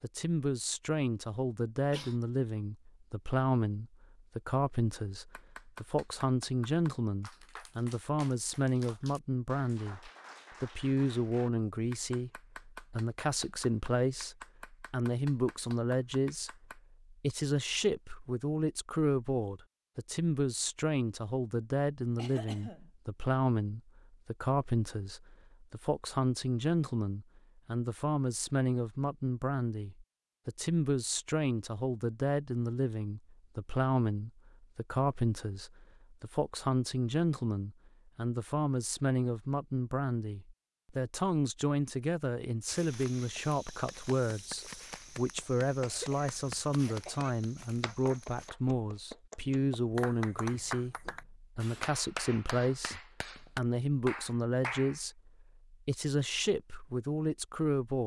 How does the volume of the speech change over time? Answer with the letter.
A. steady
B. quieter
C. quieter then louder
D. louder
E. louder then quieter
A.